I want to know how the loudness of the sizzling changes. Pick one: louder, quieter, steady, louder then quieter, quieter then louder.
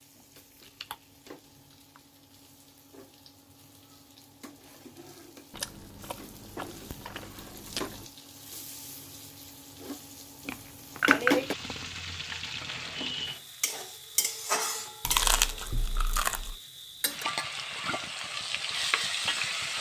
louder.